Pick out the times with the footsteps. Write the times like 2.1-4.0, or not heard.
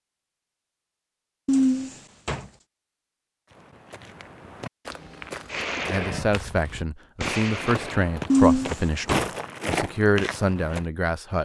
3.5-10.8.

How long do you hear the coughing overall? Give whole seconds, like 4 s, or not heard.
2 s.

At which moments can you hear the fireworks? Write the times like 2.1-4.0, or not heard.
5.5-8.1.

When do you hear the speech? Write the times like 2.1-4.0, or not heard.
5.8-11.4.